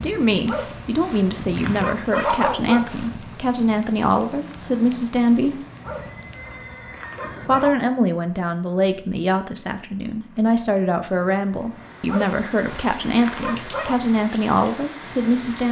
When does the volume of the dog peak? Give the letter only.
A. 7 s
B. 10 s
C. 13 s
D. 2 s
D.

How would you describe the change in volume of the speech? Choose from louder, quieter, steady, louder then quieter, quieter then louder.
steady.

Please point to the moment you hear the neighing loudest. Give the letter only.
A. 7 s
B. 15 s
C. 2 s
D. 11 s
A.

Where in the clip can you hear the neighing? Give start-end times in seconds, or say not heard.
6.0-7.5.